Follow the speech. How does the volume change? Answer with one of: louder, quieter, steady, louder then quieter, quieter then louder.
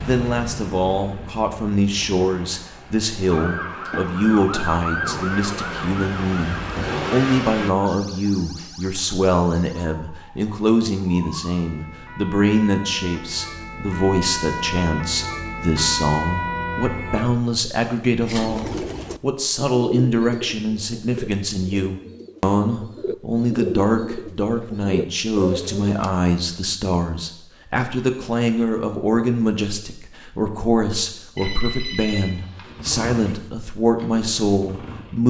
steady.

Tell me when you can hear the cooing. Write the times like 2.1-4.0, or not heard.
18.2-26.3.